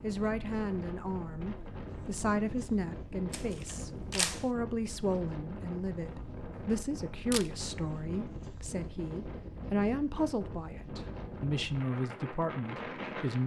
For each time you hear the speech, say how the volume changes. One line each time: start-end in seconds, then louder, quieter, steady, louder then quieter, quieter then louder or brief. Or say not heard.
0.0-13.4 steady.